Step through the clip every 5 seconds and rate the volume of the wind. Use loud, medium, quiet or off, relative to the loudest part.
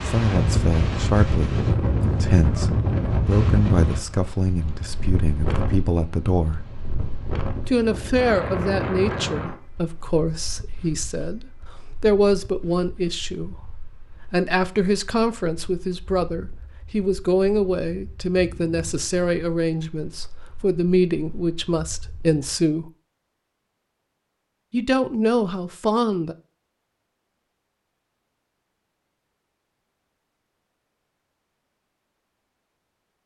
loud, medium, quiet, quiet, quiet, off, off.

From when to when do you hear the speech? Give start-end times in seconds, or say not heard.
0.0-6.6, 7.7-22.9, 24.7-26.4.